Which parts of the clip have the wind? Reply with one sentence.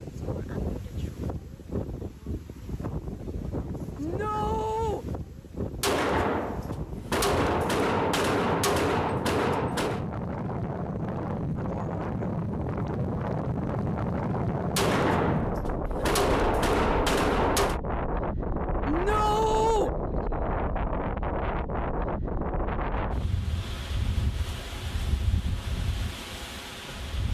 You can hear the wind from 0.0 to 27.3 s.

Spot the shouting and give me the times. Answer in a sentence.
The shouting can be heard from 4.0 to 5.0 s and from 18.9 to 19.9 s.